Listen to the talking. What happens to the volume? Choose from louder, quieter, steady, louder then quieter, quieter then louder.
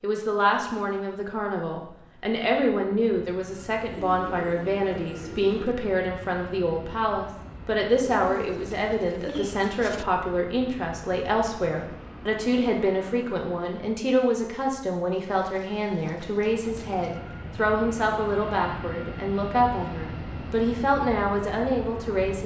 steady.